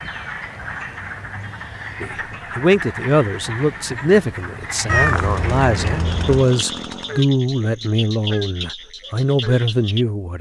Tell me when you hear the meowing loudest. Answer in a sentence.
The loudest moment of the meowing is at 5 seconds.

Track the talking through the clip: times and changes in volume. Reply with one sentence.
The talking can be heard from 2.0 to 10.3 s, at a steady volume.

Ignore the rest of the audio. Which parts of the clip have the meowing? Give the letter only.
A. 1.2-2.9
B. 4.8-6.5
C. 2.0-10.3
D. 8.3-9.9
B.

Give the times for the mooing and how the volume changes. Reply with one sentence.
The mooing can't be heard in this clip.